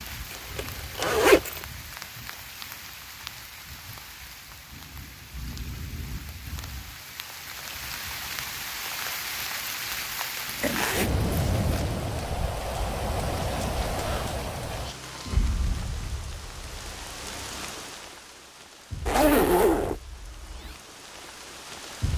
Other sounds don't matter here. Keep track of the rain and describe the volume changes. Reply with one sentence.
The volume of the rain goes up, then down.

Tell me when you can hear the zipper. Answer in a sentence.
The zipper can be heard from 0.3 to 1.6 s, from 10.4 to 11.8 s and from 19.1 to 20.0 s.